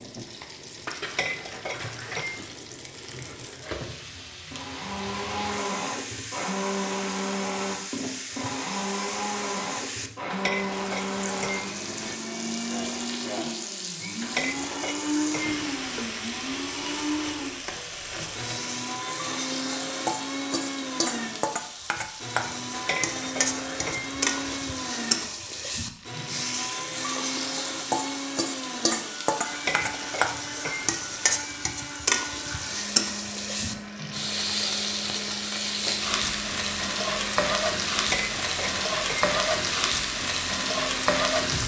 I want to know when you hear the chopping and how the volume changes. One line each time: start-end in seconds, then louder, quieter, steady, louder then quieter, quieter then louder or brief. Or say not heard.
not heard.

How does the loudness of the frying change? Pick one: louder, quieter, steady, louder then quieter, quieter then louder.
louder.